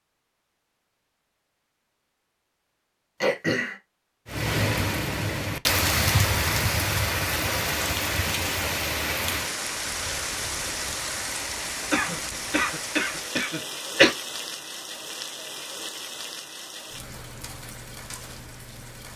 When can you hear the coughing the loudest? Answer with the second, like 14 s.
14 s.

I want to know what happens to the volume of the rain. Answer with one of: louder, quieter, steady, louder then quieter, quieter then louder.
quieter.